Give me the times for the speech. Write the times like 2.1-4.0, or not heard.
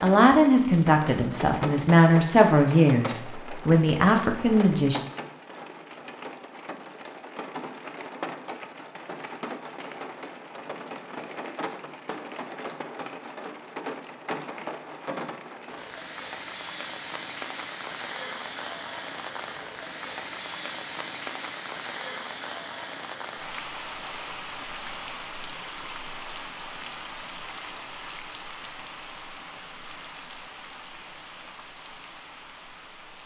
0.0-5.0.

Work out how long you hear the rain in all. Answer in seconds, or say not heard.
33 s.